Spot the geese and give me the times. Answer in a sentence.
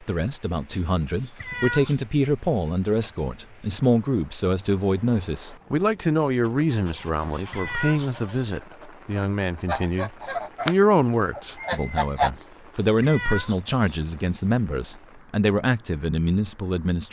The geese can be heard from 6.4 to 12.3 s.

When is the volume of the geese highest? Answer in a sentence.
The loudest moment of the geese is at 12 seconds.